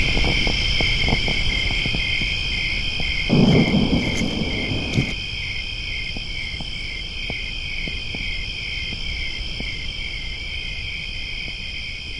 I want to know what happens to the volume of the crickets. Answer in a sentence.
The loudness of the crickets goes down.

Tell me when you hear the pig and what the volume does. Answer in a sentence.
The pig can't be heard in this clip.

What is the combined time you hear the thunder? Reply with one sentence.
The thunder can be heard for 2 seconds in total.